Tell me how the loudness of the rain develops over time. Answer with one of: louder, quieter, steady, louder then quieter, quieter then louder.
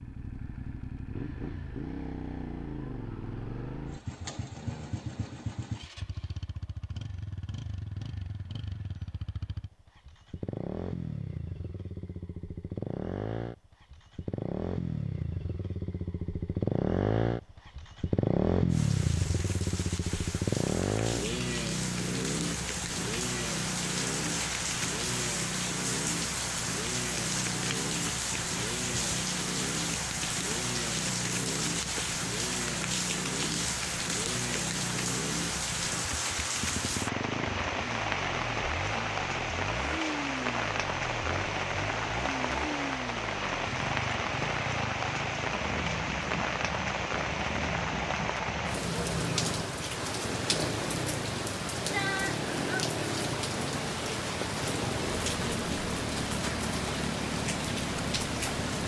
steady.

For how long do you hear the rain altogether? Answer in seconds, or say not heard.
40 s.